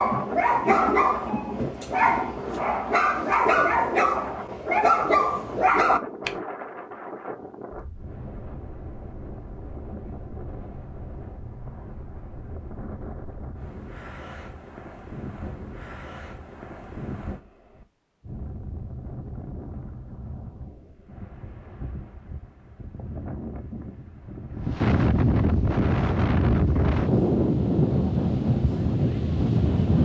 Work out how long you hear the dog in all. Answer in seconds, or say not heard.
6 s.